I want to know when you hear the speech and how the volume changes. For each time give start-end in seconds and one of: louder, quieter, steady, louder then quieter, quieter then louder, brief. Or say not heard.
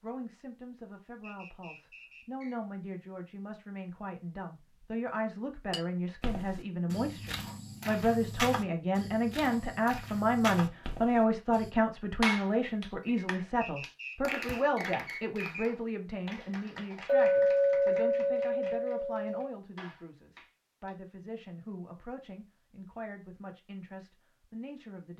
0.0-25.1 louder then quieter.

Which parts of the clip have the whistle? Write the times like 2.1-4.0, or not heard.
1.2-2.5, 13.6-15.7.